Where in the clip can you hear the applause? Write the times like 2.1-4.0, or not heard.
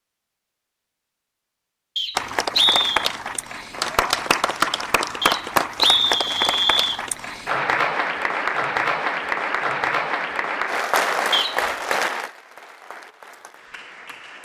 2.1-14.3.